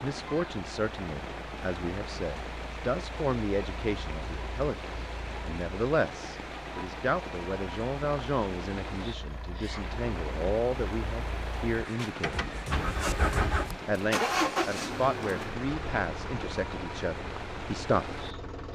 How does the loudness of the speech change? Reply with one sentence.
The loudness of the speech stays about the same.